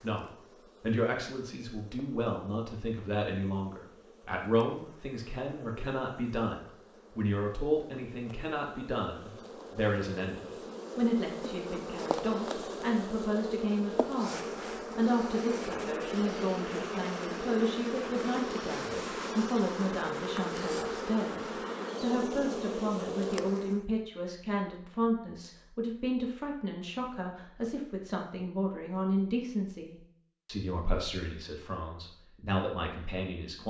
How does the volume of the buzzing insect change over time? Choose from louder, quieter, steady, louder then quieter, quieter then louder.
louder.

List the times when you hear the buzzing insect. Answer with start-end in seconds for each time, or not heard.
0.0-23.9.